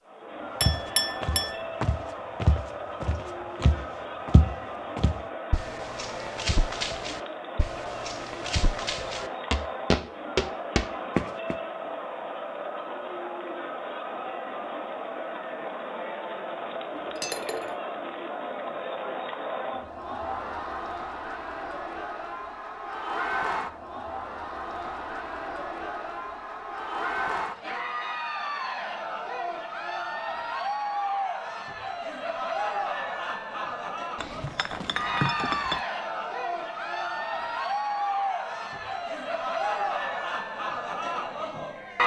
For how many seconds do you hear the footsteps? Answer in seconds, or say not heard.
11 s.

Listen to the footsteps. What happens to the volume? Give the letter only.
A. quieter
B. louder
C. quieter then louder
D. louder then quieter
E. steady
C.